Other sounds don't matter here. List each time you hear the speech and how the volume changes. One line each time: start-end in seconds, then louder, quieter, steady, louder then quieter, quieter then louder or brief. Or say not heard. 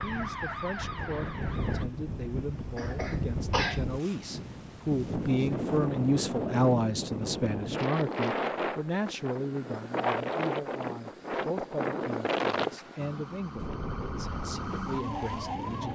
0.0-15.9 louder then quieter.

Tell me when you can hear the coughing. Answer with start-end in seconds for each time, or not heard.
2.8-3.9.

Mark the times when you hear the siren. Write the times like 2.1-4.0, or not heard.
0.0-1.9, 12.9-15.9.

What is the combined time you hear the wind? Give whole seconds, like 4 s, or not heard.
16 s.